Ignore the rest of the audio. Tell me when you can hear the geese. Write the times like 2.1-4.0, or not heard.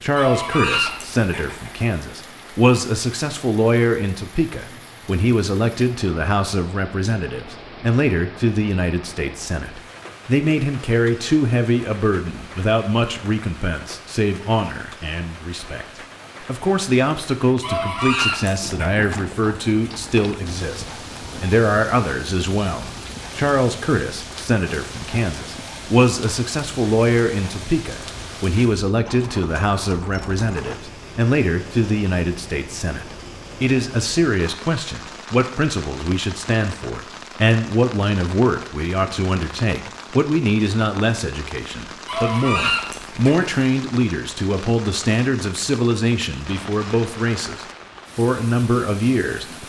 0.1-1.7, 17.6-19.0, 42.0-43.5.